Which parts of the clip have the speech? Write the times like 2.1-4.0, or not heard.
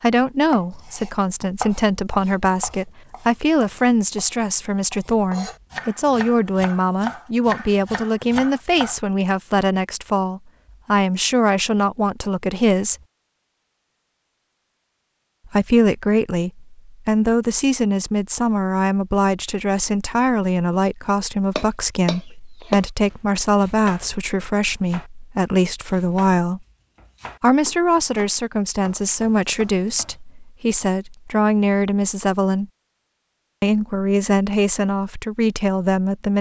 0.0-12.9, 15.4-26.6, 27.4-32.7, 33.6-36.3.